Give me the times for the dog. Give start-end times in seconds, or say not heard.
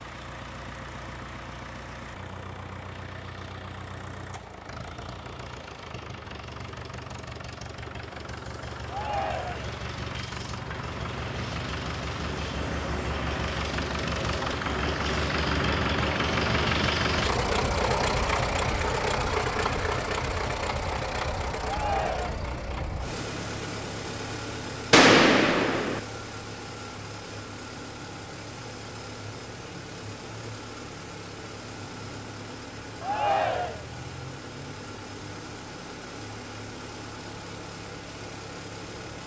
not heard.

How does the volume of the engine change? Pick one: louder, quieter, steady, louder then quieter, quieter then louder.
louder then quieter.